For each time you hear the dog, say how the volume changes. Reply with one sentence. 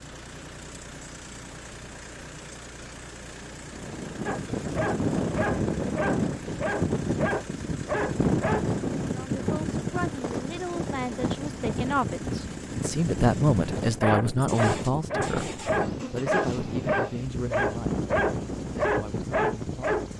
The dog can be heard from 4.2 to 8.7 s, at a steady volume; and from 13.8 to 20.1 s, at a steady volume.